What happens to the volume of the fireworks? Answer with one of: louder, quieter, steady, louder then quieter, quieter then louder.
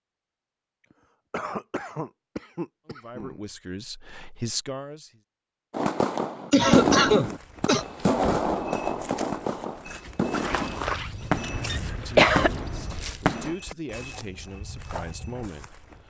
quieter.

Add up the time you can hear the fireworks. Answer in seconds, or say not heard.
8 s.